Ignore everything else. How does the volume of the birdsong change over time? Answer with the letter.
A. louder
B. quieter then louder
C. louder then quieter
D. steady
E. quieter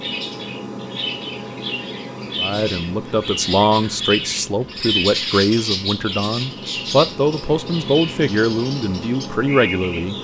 C.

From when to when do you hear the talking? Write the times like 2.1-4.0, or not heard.
2.4-10.1.